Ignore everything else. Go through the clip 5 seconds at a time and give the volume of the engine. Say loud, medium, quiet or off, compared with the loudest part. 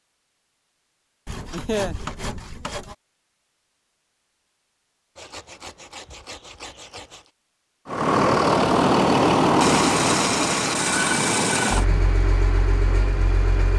off, loud, medium.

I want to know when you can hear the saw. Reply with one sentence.
The saw can be heard from 1.2 to 3.0 s, from 5.2 to 7.3 s and from 9.6 to 11.8 s.